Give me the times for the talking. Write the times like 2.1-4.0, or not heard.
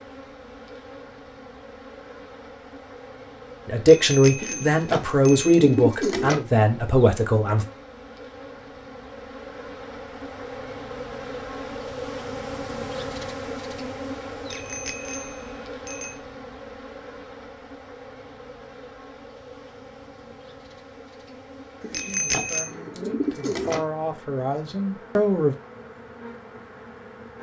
3.6-7.7, 21.9-25.6.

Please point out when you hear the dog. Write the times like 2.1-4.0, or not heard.
not heard.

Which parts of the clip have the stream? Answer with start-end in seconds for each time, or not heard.
not heard.